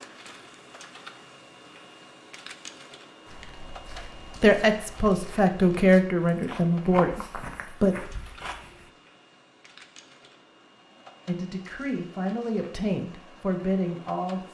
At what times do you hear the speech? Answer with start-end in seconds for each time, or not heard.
4.3-8.0, 11.2-14.4.